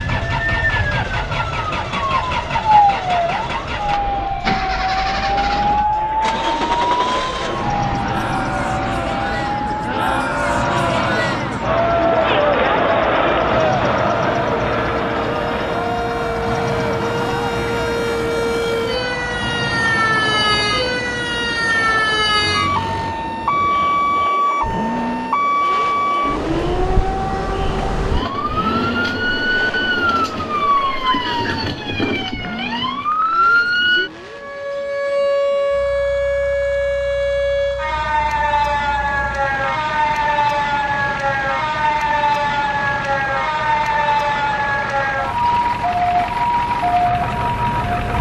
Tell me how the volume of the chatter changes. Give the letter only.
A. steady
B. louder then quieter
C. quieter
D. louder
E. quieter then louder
B.